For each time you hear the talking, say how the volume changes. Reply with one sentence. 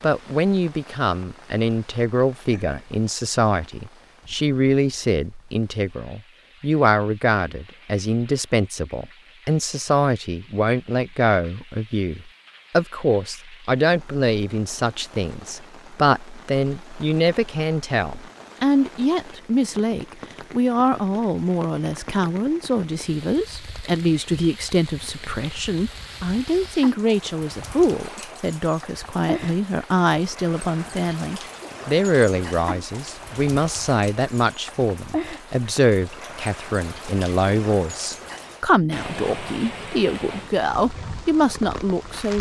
The talking can be heard from 0.0 to 42.3 s, at a steady volume.